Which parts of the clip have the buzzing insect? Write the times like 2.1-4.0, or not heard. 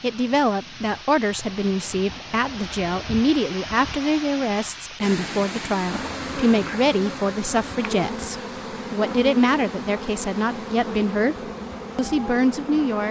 5.8-13.0.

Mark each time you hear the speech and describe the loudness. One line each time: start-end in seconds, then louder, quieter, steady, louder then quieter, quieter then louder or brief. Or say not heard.
0.0-13.0 steady.